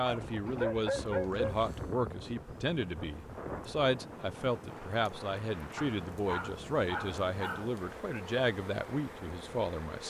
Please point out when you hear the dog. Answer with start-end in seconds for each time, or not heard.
0.0-1.7, 5.8-7.7.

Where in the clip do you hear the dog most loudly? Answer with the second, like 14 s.
1 s.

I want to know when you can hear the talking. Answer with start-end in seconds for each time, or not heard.
0.0-10.0.